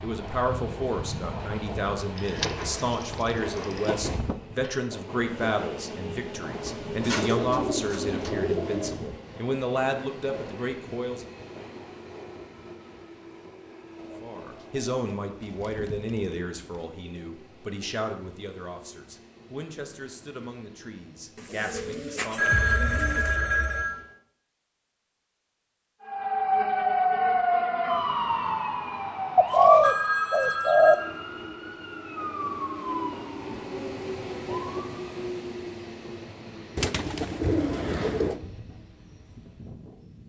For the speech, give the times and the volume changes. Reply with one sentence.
The speech can be heard from 0.0 to 11.3 s, at a steady volume; and from 14.2 to 22.6 s, getting quieter.